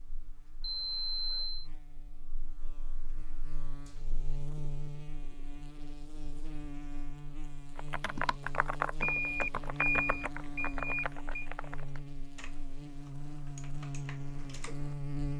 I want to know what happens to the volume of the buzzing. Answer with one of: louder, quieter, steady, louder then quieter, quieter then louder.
louder.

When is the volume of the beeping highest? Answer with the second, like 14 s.
10 s.